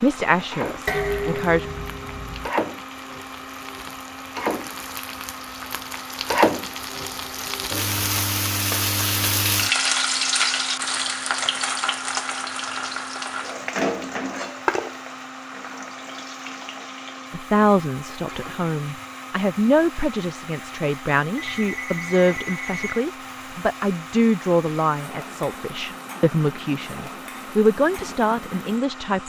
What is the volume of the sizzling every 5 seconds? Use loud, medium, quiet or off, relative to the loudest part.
medium, loud, loud, quiet, quiet, quiet.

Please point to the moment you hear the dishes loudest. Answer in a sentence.
The loudest moment of the dishes is at 1 second.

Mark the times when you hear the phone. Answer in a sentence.
The phone can be heard from 21.4 to 22.9 s.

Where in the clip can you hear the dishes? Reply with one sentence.
The dishes can be heard from 0.8 to 2.5 s.